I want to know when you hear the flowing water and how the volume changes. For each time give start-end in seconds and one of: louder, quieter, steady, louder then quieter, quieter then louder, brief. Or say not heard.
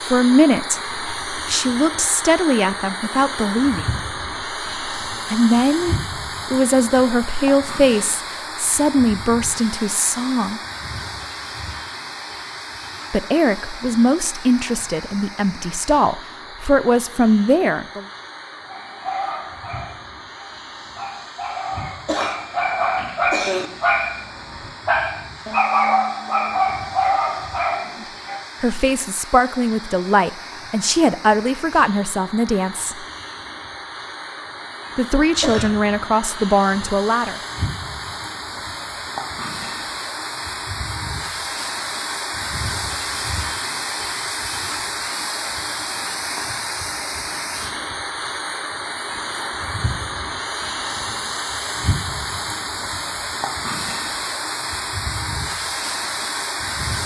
0.0-57.0 quieter then louder.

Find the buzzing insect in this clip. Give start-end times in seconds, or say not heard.
not heard.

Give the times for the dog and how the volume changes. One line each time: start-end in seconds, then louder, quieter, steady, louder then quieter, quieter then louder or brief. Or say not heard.
18.6-28.4 louder.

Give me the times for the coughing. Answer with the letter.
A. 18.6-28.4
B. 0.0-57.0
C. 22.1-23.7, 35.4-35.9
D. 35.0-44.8
C.